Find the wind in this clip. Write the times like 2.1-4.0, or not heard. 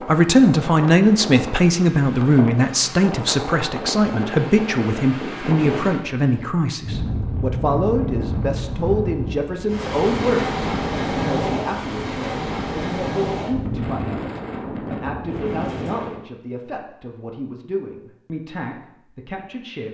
0.0-16.2.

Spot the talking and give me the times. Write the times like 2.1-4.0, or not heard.
0.1-19.8.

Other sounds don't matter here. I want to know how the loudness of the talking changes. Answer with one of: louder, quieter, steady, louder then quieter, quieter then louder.
quieter.